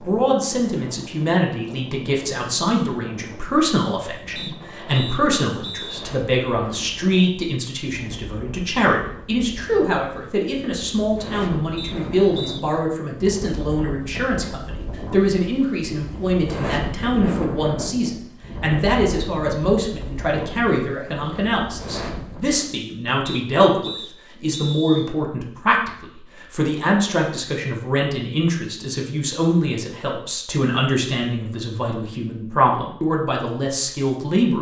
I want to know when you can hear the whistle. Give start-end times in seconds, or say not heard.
4.3-6.0, 11.8-12.6, 23.2-25.1.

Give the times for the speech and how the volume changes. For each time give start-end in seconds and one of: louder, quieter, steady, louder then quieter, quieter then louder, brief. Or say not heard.
0.0-34.5 steady.